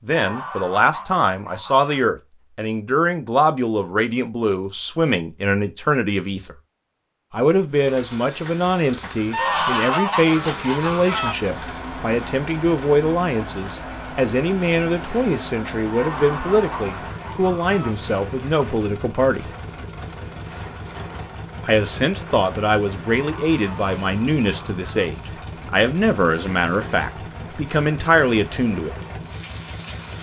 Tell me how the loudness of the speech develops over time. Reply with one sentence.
The loudness of the speech stays about the same.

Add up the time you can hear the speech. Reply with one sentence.
The speech can be heard for 26 seconds in total.